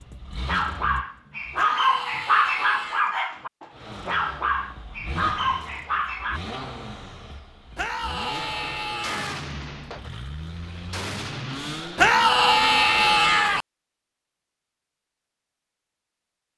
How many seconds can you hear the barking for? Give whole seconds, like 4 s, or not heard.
6 s.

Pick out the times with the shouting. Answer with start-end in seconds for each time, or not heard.
1.6-3.1, 7.8-9.4, 11.9-13.7.